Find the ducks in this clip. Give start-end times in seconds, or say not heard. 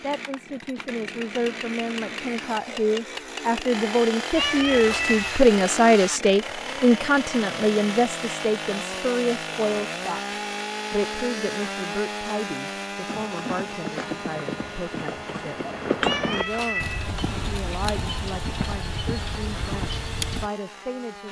not heard.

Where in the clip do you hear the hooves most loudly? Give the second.
16 s.